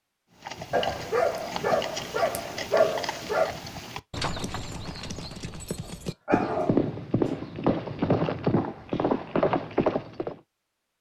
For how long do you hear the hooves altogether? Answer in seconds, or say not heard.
10 s.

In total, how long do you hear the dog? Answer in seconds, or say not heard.
4 s.